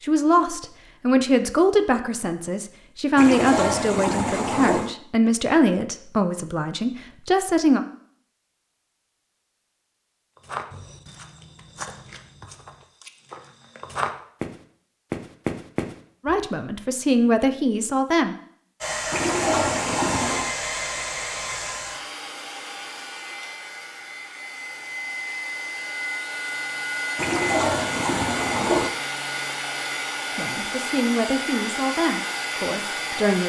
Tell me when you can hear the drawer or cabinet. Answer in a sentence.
You can't hear the drawer or cabinet here.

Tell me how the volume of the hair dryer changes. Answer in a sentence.
The loudness of the hair dryer goes down, then up.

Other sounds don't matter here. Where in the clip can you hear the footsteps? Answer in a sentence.
You can hear the footsteps from 10.4 to 16.4 s.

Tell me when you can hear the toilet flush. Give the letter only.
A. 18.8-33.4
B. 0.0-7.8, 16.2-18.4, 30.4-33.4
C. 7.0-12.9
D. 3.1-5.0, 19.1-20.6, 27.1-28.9
D.